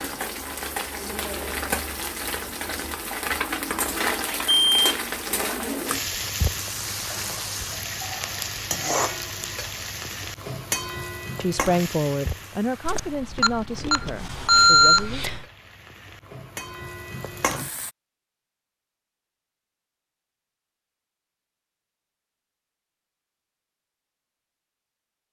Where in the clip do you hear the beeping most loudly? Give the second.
15 s.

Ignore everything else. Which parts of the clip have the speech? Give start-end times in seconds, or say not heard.
11.4-15.3.